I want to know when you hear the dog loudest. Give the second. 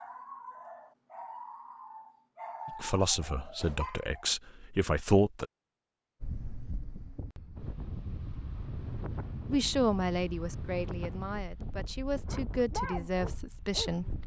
13 s.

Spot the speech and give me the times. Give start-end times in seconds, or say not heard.
2.8-5.5, 9.5-14.1.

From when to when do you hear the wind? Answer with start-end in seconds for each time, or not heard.
6.2-14.2.